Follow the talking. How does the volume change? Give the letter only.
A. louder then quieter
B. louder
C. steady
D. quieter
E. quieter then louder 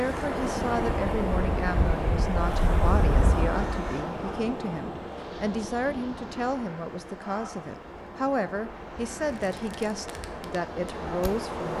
C.